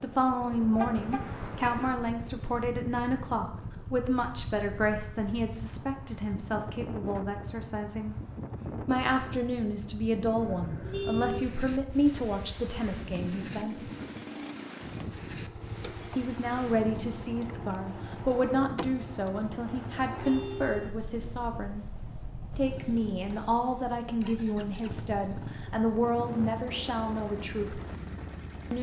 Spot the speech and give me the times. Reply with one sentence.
The speech can be heard from 0.0 to 8.2 s, from 8.8 to 13.9 s, from 16.1 to 21.9 s and from 22.6 to 27.8 s.